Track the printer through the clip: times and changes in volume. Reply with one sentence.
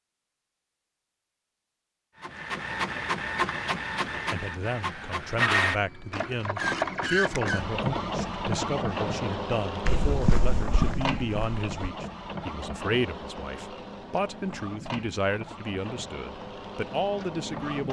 You can hear the printer from 2.2 to 17.8 s, getting quieter.